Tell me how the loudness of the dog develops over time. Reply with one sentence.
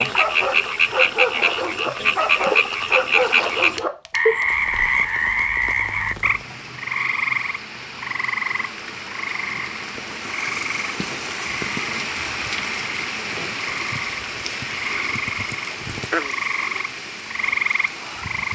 The loudness of the dog stays about the same.